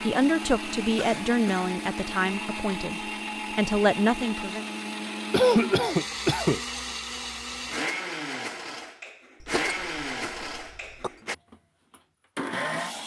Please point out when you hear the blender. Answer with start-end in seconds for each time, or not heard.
0.0-13.0.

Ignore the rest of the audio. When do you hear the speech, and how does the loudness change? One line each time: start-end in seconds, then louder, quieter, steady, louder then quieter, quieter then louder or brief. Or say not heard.
0.0-4.7 quieter then louder.